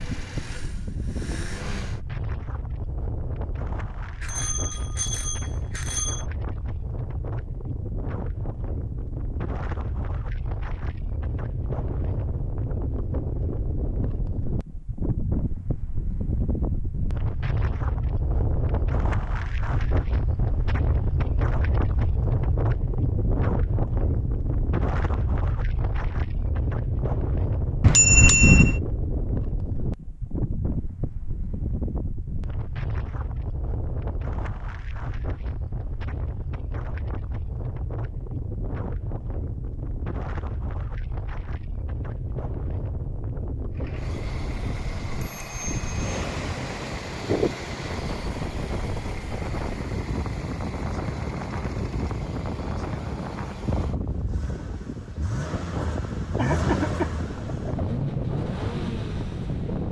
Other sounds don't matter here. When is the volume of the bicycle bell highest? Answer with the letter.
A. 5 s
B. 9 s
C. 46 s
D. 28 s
D.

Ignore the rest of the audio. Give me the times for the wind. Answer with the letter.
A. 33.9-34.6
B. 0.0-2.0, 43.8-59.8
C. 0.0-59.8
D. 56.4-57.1
C.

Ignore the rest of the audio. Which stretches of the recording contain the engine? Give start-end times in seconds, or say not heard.
0.0-2.0, 43.8-59.8.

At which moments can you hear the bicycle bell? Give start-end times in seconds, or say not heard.
4.2-6.2, 27.8-28.8, 45.2-46.1.